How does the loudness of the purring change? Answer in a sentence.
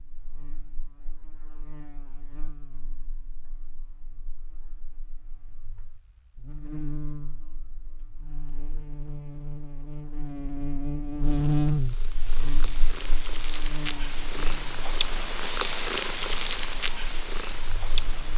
The loudness of the purring goes up, then down.